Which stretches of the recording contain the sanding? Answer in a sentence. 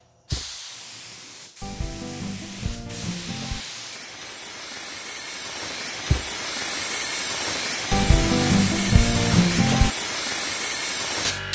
You can hear the sanding from 1.6 to 3.6 s and from 7.9 to 9.9 s.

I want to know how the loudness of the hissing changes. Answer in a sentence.
The volume of the hissing goes up.